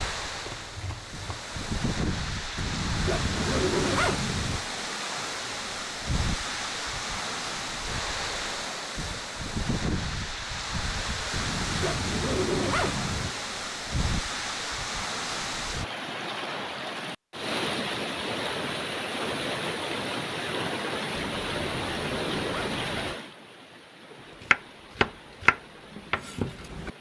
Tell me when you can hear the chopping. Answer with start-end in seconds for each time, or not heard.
0.2-1.5, 24.4-26.9.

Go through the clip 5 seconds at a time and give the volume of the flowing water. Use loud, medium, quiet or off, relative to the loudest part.
loud, loud, loud, loud, loud, quiet.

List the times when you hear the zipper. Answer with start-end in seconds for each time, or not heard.
2.5-4.6, 11.3-13.3, 21.2-23.1.